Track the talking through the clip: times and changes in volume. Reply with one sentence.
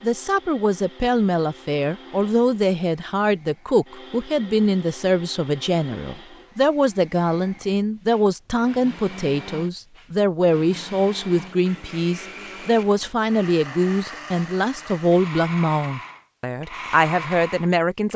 The talking can be heard from 0.0 to 18.1 s, at a steady volume.